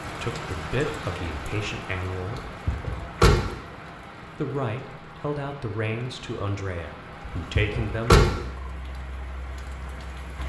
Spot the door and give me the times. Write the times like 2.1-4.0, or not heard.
2.6-3.5, 7.5-8.3.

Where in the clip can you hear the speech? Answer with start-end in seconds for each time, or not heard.
0.0-2.5, 4.2-8.2.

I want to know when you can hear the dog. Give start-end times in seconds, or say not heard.
not heard.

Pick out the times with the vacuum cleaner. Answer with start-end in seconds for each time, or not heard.
not heard.